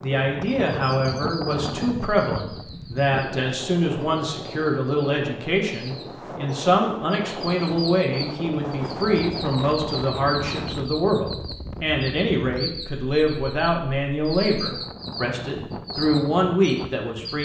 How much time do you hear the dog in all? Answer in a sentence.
The dog can't be heard in this clip.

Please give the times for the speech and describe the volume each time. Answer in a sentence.
You can hear the speech from 0.0 to 17.4 s, at a steady volume.